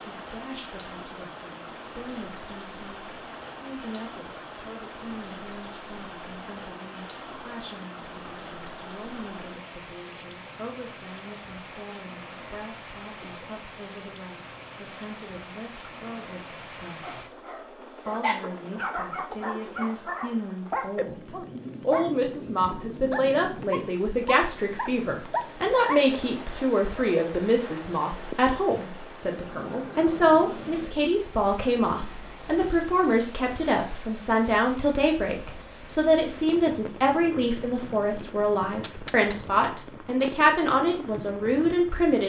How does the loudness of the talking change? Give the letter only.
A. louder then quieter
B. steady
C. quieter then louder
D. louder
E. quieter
D.